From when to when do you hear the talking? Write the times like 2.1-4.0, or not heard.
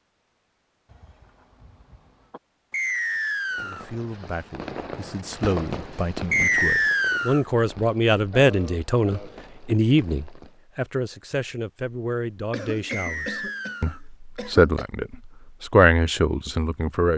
3.6-17.1.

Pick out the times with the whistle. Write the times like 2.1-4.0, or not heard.
2.7-3.9, 6.3-7.5, 12.8-14.0.